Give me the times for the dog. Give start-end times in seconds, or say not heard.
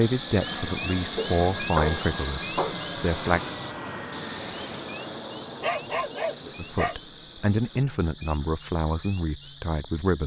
1.1-2.8, 5.6-7.0.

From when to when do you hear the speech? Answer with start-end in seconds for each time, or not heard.
0.0-3.5, 6.5-10.2.